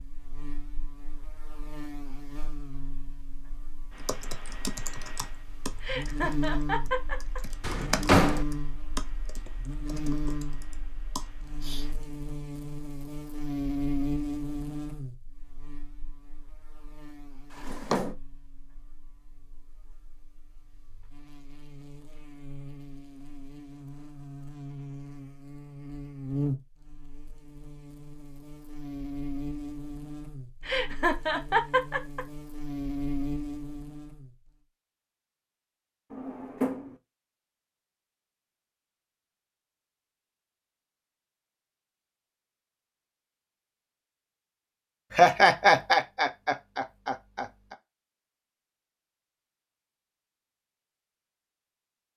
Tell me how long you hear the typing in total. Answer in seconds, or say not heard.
8 s.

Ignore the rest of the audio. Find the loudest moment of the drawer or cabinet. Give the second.
8 s.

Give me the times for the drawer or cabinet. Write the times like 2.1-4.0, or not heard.
7.6-8.4, 17.6-18.1, 36.1-37.0.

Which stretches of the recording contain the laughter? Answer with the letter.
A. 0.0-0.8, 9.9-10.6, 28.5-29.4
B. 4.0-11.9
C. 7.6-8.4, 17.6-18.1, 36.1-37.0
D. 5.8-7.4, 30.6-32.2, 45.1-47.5
D.